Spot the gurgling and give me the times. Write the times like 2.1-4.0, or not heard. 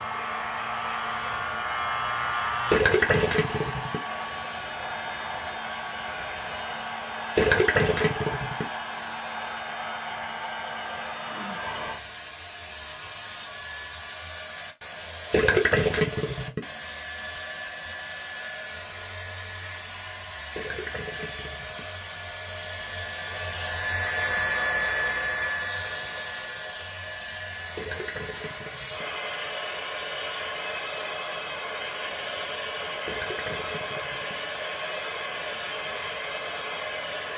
2.7-4.0, 7.3-8.7, 15.3-16.6, 20.5-21.9, 27.8-29.1, 33.0-34.4.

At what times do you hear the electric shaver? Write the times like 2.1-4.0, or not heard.
0.0-2.8.